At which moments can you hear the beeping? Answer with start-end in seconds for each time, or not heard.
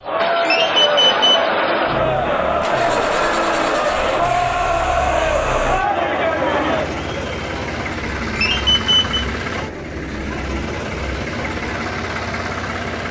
0.4-1.5, 8.3-9.2.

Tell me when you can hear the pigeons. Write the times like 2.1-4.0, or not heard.
not heard.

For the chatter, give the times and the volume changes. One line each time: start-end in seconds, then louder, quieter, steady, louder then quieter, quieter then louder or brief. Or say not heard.
0.0-13.0 quieter.